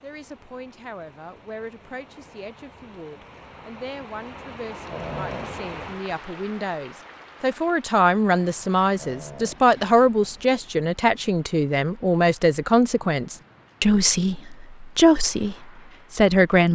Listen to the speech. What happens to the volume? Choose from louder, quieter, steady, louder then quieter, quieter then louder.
louder.